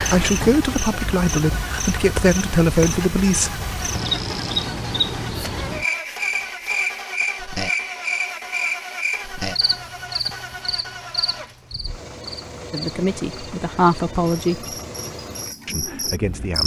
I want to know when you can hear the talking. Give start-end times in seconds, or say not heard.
0.0-4.0, 12.7-14.8, 15.7-16.6.